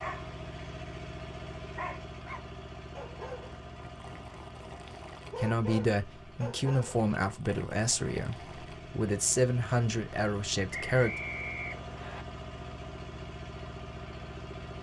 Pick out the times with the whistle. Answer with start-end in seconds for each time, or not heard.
10.7-12.2.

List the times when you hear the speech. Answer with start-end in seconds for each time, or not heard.
5.4-11.2.